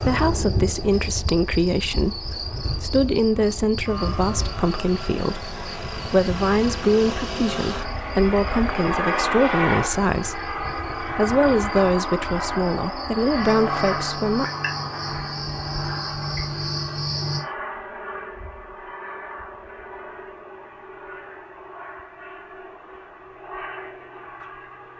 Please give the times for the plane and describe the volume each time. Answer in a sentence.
The plane can be heard from 0.0 to 24.9 s, getting louder then quieter.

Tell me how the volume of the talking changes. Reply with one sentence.
The volume of the talking stays about the same.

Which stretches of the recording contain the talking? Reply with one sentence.
You can hear the talking from 0.0 to 14.4 s.